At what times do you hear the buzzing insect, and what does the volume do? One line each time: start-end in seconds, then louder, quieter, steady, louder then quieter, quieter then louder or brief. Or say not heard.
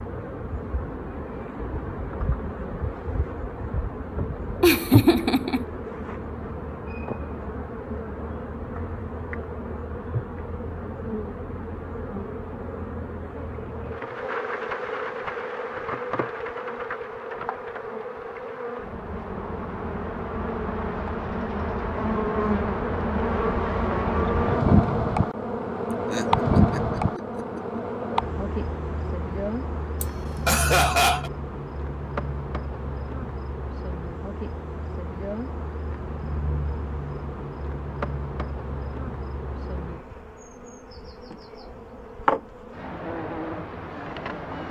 0.0-44.6 louder then quieter.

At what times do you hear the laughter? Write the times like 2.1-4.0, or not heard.
4.6-5.7, 26.1-27.8, 30.0-31.3.